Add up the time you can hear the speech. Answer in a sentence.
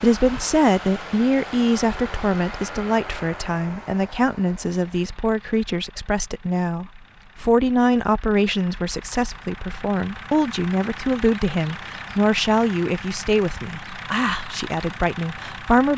The speech can be heard for 16 seconds in total.